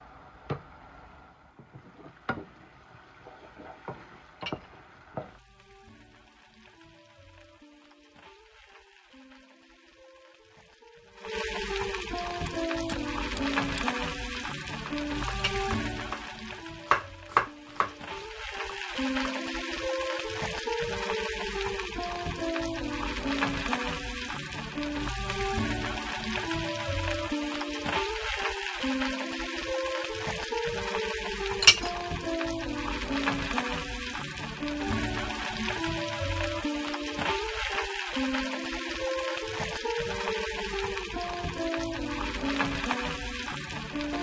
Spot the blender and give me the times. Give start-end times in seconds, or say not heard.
not heard.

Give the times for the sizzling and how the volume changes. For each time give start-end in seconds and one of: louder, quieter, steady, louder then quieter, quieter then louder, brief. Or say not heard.
0.0-44.1 louder.